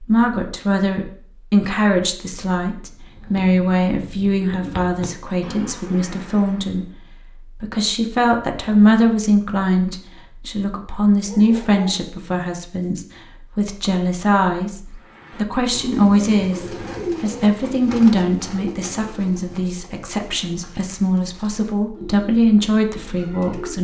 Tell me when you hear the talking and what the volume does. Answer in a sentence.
You can hear the talking from 0.0 to 23.7 s, at a steady volume.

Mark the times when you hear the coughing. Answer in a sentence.
You can't hear the coughing here.